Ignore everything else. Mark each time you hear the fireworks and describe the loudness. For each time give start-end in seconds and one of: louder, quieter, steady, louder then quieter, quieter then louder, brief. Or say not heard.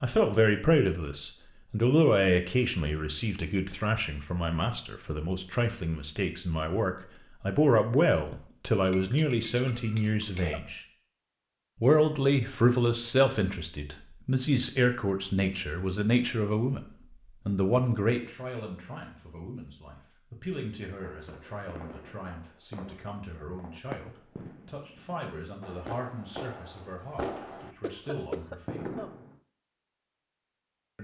20.9-29.4 louder.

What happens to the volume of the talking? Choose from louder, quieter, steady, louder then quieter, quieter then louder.
quieter.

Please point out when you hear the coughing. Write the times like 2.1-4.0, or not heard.
9.8-10.6, 27.6-29.1.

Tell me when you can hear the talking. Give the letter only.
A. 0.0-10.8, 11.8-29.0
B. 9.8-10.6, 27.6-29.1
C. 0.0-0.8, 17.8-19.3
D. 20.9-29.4
A.